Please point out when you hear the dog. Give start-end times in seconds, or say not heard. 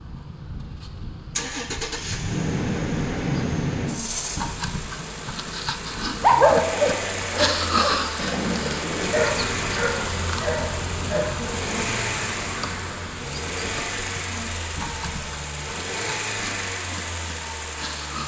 6.2-11.9.